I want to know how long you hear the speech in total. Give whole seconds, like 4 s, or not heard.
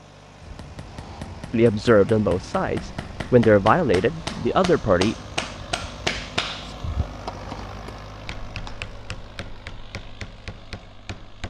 4 s.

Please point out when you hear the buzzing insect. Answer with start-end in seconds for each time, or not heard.
not heard.